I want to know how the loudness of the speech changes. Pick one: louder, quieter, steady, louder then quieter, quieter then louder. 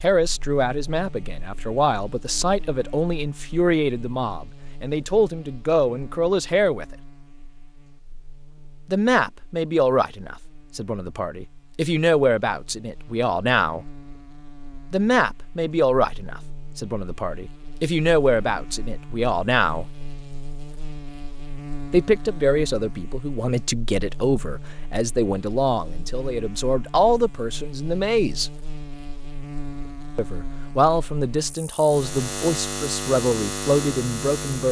steady.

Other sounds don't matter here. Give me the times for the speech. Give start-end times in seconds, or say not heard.
0.0-6.8, 8.9-13.8, 14.9-19.9, 21.9-28.5, 30.1-34.6.